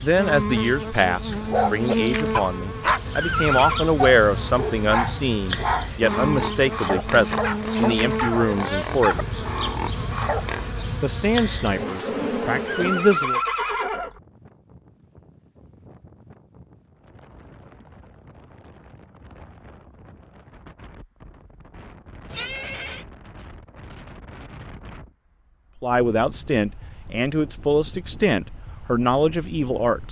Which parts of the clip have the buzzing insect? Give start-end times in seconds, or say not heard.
0.0-13.2.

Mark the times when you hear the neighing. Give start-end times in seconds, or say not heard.
3.1-3.9, 12.7-14.2, 22.3-23.1.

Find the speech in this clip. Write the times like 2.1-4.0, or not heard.
0.0-9.4, 11.0-13.4, 25.8-30.0.